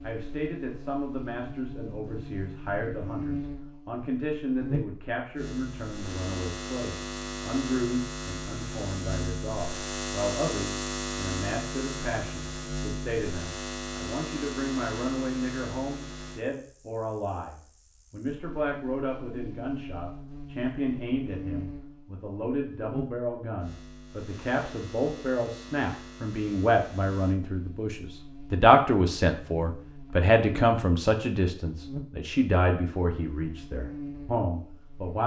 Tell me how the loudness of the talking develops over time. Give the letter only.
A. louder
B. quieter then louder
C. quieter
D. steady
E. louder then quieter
A.